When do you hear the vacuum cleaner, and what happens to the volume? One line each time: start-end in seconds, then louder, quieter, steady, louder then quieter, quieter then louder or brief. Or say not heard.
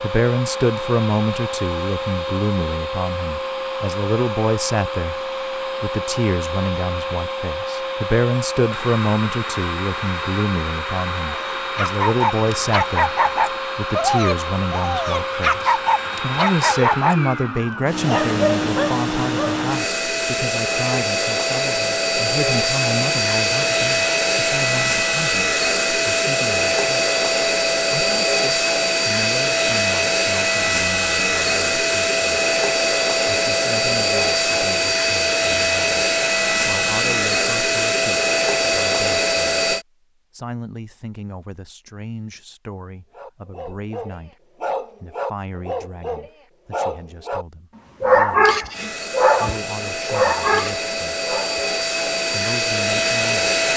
0.0-39.9 louder
48.7-53.7 louder.